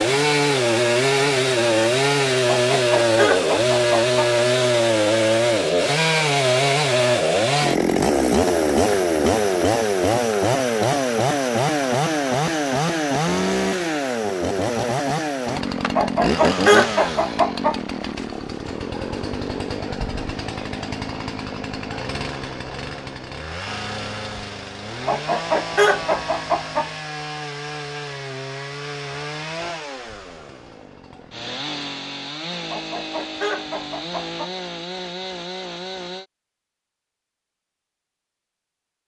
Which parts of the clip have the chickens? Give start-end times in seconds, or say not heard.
2.5-4.3, 15.9-17.8, 25.1-26.9, 32.7-34.5.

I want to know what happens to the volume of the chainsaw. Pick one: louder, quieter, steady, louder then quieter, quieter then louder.
quieter.